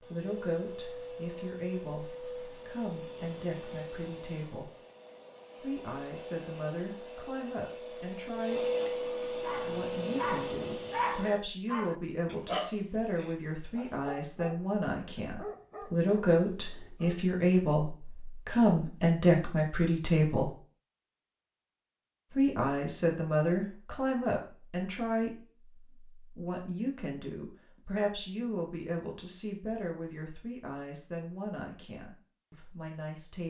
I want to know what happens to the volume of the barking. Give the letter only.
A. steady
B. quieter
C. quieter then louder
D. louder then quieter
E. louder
B.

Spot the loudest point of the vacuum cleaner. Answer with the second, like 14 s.
9 s.